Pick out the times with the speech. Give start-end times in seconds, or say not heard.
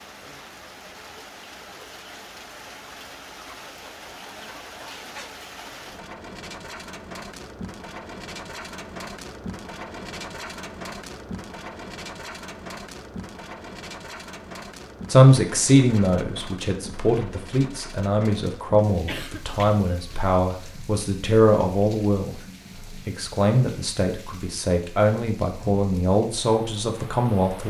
15.1-22.4, 23.1-27.6.